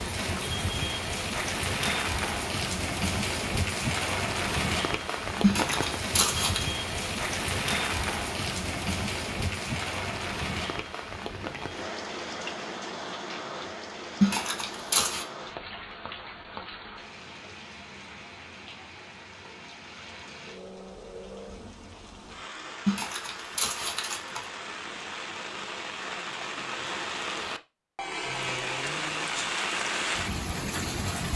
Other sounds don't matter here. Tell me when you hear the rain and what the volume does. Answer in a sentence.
You can hear the rain from 0.0 to 31.3 s, getting quieter then louder.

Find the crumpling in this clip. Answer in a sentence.
You can hear the crumpling from 5.4 to 6.7 s, from 14.2 to 15.2 s and from 22.9 to 24.4 s.